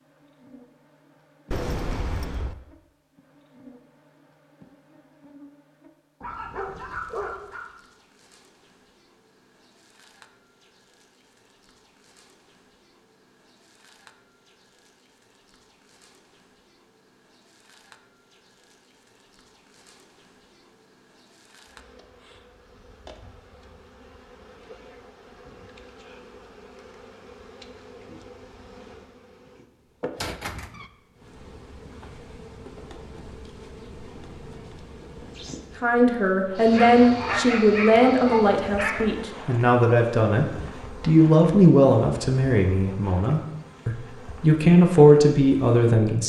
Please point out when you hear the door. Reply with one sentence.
You can hear the door from 1.5 to 2.5 s and from 30.1 to 30.9 s.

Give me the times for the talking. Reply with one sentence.
You can hear the talking from 35.8 to 46.2 s.